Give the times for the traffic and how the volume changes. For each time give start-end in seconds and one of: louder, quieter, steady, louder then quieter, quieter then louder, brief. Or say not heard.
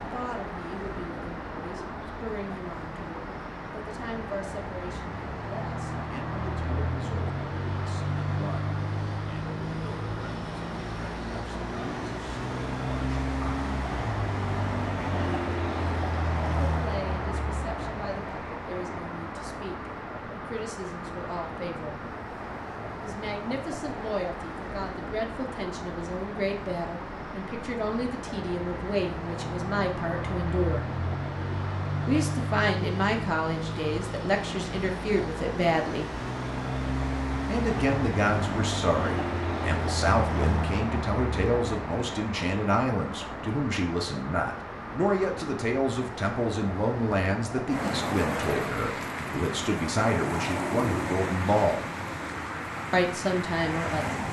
0.0-54.2 steady.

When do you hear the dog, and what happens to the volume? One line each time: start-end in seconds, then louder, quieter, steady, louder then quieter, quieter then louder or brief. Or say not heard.
not heard.